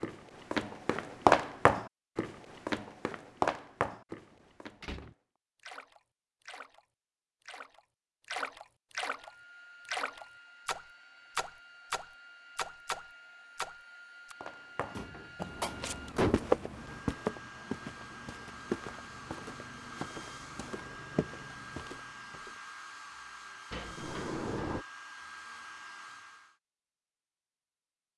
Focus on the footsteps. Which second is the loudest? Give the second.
1 s.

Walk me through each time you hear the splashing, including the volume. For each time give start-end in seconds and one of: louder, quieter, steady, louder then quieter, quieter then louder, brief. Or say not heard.
5.6-6.8 brief
7.5-14.3 steady.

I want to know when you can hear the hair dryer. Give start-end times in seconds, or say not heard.
9.2-26.6.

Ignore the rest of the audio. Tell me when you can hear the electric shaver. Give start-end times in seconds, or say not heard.
not heard.